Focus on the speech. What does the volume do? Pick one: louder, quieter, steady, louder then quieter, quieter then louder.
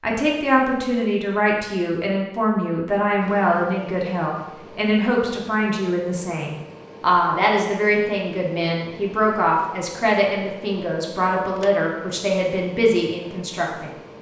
steady.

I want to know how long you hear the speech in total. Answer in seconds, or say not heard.
14 s.